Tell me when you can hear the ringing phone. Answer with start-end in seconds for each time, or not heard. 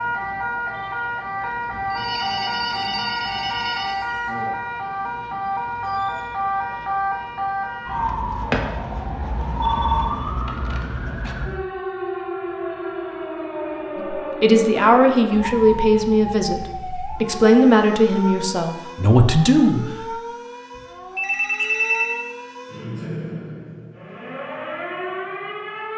1.9-4.0, 9.4-10.2, 20.8-22.1.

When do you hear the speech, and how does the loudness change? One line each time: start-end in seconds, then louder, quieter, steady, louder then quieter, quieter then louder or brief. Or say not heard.
13.9-20.1 steady.